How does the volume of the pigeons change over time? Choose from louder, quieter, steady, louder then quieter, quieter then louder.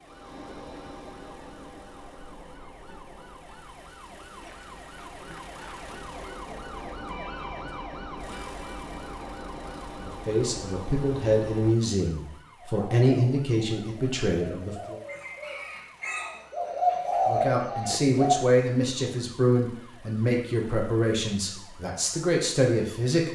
louder.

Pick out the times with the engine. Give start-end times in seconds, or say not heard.
0.0-11.8.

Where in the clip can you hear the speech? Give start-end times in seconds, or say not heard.
10.0-15.0, 17.2-23.3.